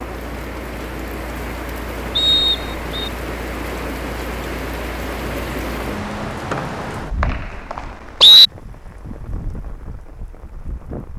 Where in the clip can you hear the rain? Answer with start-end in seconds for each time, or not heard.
0.0-11.1.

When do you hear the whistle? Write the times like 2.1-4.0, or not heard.
2.1-3.0, 6.5-8.5.